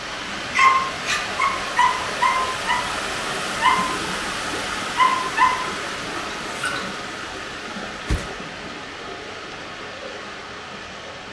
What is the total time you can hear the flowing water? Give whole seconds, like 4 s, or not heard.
11 s.